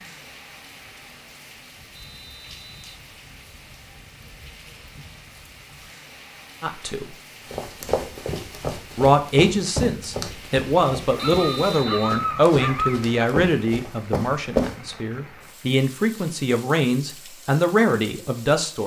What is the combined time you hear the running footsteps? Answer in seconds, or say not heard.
7 s.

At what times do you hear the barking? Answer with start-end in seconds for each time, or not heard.
11.1-13.1.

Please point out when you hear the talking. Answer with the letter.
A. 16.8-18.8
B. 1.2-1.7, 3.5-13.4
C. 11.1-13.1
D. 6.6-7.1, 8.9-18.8
D.